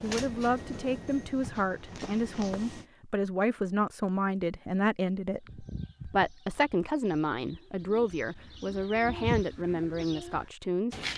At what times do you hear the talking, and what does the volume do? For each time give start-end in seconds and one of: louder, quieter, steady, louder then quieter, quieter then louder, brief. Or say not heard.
0.0-10.9 steady.